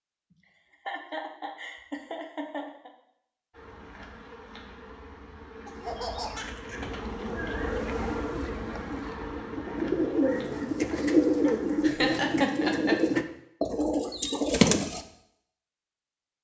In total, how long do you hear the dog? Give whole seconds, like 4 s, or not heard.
not heard.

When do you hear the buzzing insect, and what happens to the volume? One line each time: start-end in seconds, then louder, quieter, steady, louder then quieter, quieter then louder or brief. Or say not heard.
3.5-11.9 louder then quieter.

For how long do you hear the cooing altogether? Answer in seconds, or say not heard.
8 s.